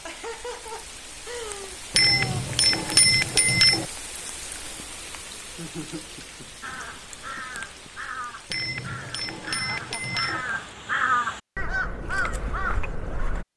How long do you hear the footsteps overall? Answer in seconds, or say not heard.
not heard.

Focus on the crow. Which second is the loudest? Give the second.
11 s.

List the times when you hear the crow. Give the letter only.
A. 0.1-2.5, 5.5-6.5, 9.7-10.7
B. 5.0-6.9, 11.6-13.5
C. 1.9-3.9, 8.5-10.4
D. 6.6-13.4
D.